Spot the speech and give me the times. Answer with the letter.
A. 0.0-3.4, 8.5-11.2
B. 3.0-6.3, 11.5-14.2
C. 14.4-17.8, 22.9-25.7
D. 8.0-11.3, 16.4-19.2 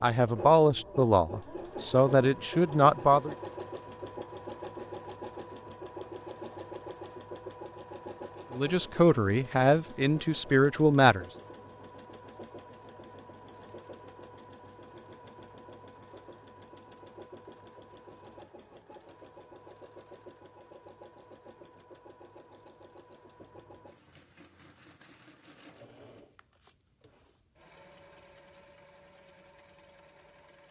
A.